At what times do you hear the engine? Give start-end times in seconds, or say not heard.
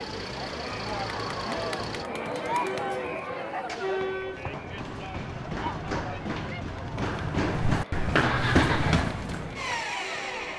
0.0-2.0, 7.4-10.5.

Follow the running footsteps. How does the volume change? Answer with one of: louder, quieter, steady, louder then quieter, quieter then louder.
louder.